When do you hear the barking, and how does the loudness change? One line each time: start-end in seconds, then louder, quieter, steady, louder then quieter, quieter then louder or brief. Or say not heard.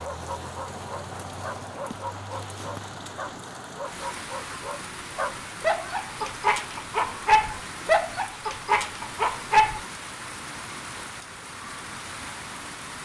0.0-9.8 louder.